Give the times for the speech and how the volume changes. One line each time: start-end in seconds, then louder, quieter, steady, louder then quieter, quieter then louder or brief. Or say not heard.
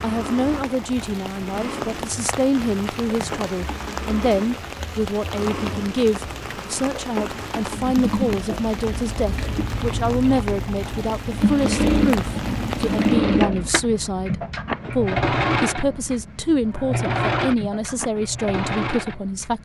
0.0-19.6 steady.